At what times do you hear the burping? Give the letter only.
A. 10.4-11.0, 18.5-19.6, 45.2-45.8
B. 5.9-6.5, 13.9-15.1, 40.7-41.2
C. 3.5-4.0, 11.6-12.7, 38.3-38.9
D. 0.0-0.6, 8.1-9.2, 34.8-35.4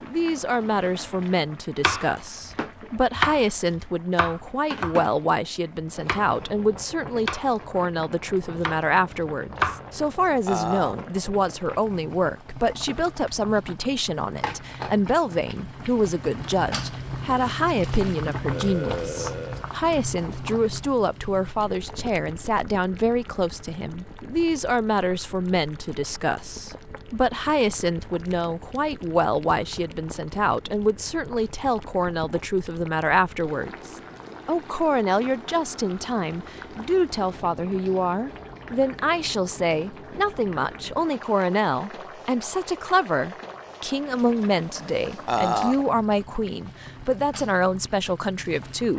A.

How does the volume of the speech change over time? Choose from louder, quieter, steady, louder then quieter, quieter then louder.
steady.